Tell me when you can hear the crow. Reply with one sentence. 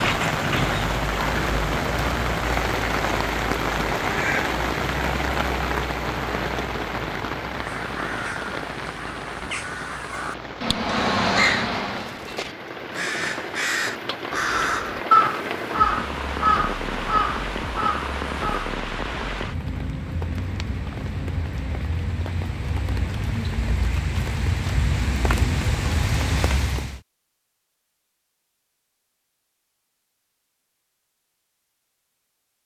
The crow can be heard from 7.5 to 18.8 s.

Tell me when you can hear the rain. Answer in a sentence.
The rain can be heard from 0.0 to 27.0 s.